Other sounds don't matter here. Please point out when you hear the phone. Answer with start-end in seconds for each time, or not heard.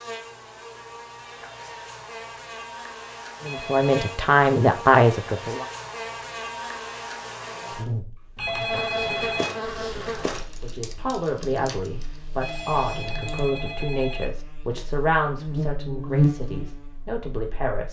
3.4-4.2, 8.3-9.5, 12.3-14.2.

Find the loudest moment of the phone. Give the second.
9 s.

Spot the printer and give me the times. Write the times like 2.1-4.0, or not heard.
not heard.